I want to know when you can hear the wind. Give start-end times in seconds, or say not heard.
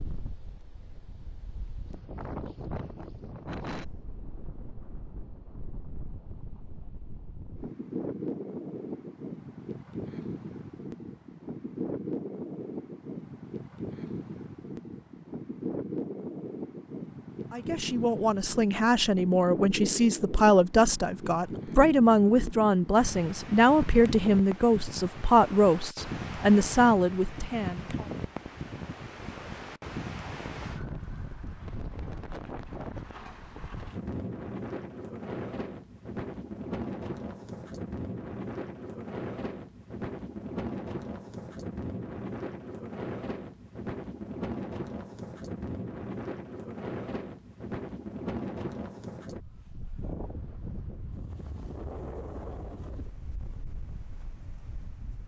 0.0-55.2.